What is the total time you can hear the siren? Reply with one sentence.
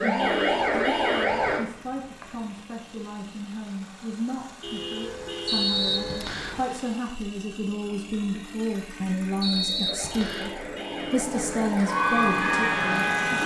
The siren can be heard for 5 seconds in total.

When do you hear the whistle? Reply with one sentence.
The whistle can be heard from 1.5 to 2.5 s, from 5.5 to 6.6 s and from 9.4 to 10.6 s.